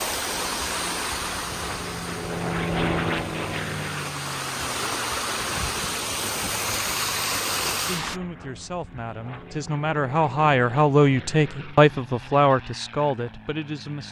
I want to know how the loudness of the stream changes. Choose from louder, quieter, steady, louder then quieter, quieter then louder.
quieter then louder.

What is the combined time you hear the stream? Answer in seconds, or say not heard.
8 s.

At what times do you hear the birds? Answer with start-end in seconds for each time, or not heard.
not heard.